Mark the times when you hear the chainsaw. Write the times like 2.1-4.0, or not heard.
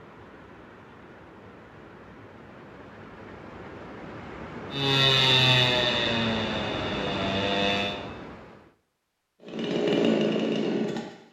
4.7-8.0, 9.4-11.2.